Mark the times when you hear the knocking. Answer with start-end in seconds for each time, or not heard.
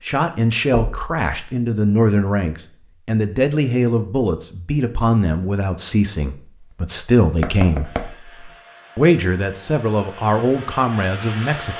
0.7-1.2, 7.3-8.4.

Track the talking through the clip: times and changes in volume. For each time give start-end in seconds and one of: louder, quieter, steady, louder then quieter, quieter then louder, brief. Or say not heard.
0.1-7.8 steady
8.9-11.7 brief.